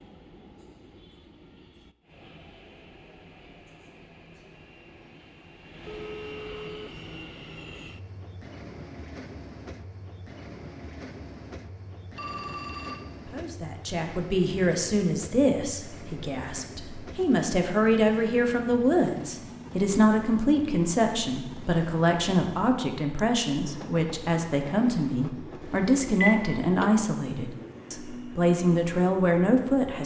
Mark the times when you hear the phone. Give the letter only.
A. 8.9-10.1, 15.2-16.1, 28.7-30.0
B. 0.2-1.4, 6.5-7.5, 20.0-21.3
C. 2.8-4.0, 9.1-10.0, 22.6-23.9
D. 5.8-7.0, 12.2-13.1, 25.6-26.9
D.